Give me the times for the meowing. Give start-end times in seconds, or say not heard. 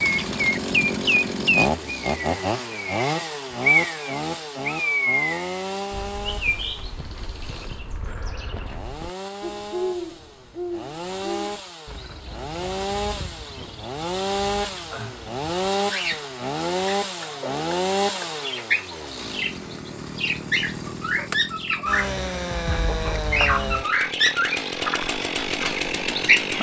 not heard.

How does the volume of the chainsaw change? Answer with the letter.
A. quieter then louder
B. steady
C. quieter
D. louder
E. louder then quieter
A.